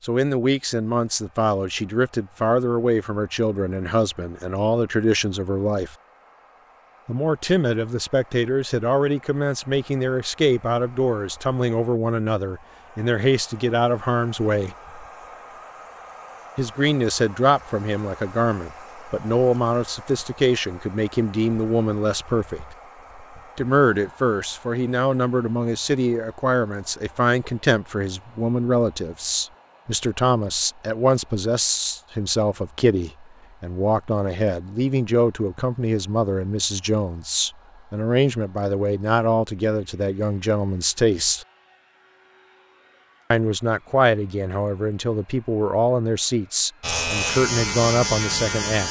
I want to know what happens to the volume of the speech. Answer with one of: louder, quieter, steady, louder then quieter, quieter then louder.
steady.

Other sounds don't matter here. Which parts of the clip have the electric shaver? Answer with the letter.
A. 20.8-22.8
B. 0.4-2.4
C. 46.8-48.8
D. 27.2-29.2
C.